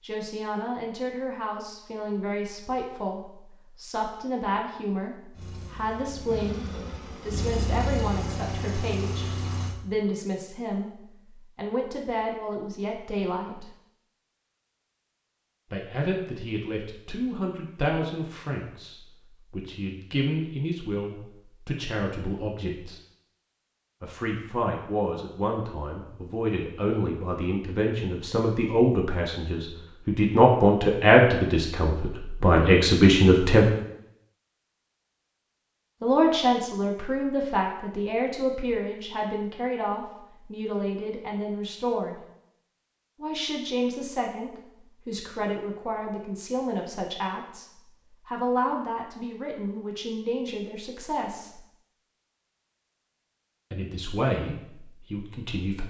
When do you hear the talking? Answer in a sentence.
The talking can be heard from 0.0 to 13.7 s, from 15.7 to 23.0 s, from 24.0 to 33.6 s, from 36.0 to 42.2 s, from 43.2 to 51.6 s and from 53.7 to 55.8 s.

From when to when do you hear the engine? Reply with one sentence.
You can hear the engine from 5.3 to 9.8 s.